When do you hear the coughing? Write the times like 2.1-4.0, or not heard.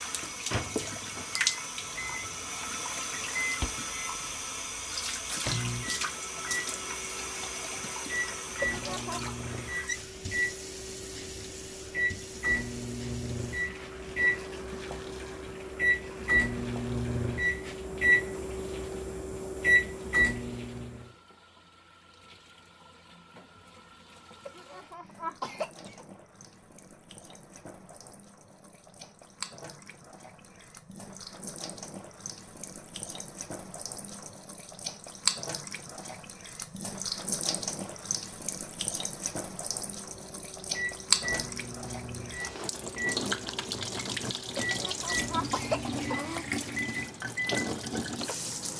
8.6-9.3, 24.4-26.1, 44.6-46.5.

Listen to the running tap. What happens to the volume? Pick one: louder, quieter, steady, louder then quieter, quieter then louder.
quieter then louder.